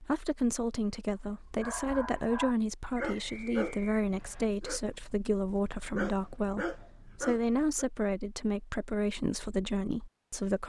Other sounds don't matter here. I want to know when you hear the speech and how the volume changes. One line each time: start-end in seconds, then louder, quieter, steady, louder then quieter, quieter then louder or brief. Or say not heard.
0.0-10.6 steady.